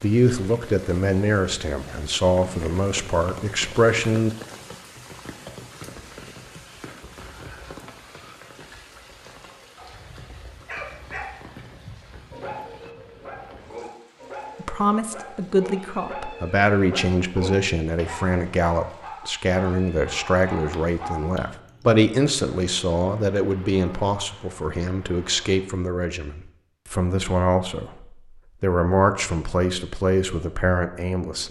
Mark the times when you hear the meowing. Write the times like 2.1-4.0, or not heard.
not heard.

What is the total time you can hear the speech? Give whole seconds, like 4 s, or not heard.
21 s.